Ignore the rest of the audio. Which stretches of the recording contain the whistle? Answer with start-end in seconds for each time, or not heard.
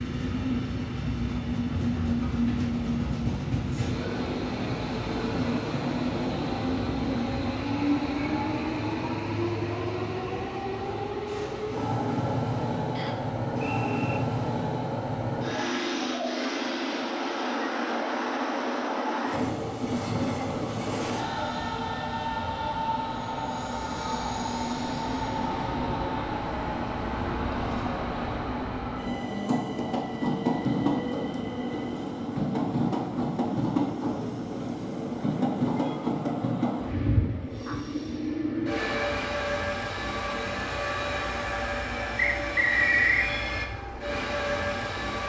12.9-14.2, 42.4-43.3.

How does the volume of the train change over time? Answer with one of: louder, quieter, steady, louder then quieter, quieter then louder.
steady.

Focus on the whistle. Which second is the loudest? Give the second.
43 s.